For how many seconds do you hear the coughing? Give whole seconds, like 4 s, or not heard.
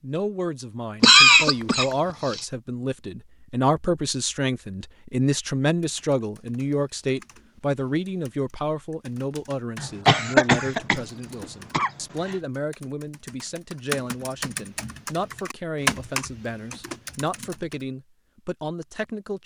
4 s.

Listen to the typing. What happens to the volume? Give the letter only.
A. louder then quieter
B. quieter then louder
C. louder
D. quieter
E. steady
C.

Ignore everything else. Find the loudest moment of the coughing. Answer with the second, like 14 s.
1 s.